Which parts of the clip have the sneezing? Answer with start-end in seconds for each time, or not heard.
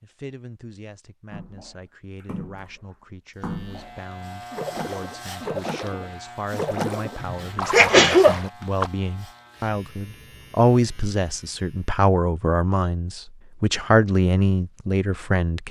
7.2-8.4.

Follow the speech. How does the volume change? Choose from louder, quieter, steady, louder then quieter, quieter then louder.
louder.